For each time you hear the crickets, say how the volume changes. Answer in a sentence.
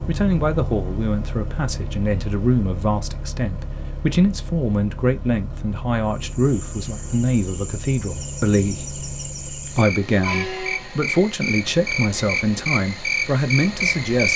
You can hear the crickets from 6.1 to 14.3 s, getting louder.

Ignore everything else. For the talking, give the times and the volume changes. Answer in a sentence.
The talking can be heard from 0.1 to 14.3 s, at a steady volume.